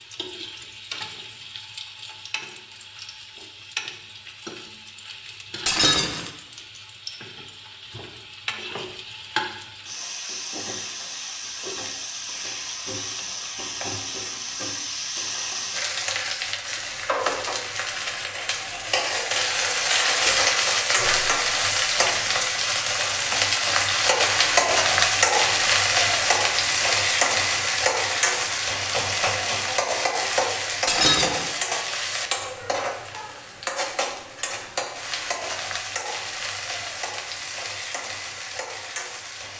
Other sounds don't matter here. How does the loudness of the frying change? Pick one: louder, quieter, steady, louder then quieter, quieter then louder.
louder then quieter.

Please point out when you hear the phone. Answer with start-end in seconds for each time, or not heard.
not heard.